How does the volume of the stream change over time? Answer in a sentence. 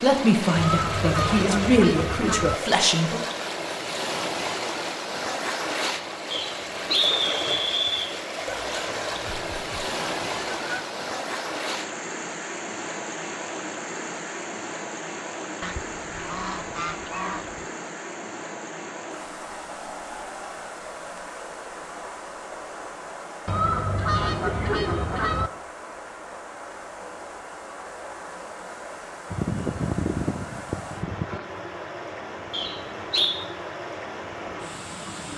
The loudness of the stream goes down.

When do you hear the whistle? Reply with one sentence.
The whistle can be heard from 6.3 to 8.1 s and from 32.5 to 33.4 s.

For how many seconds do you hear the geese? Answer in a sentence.
The geese can be heard for 11 seconds in total.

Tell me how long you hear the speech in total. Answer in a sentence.
You can hear the speech for 3 seconds altogether.